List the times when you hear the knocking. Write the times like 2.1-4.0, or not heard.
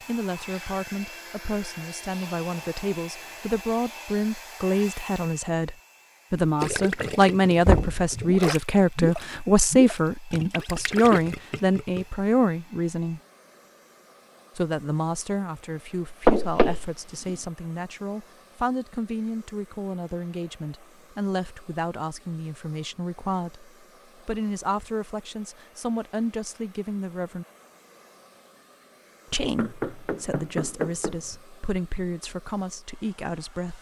7.7-8.1, 16.2-17.3, 29.6-31.4.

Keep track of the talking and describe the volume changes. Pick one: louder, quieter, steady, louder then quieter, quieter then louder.
louder then quieter.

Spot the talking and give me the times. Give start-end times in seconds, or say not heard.
0.1-13.2, 14.6-27.4, 29.3-33.7.